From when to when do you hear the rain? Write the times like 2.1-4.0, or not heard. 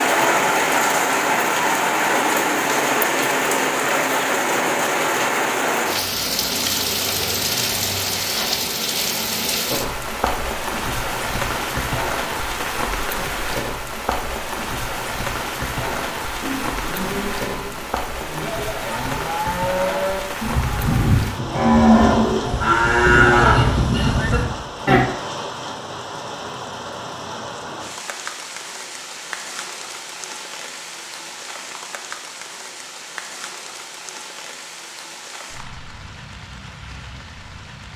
0.0-37.9.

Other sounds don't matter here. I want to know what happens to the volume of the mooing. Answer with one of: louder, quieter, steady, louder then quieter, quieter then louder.
louder.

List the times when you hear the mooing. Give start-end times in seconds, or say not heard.
15.8-25.1.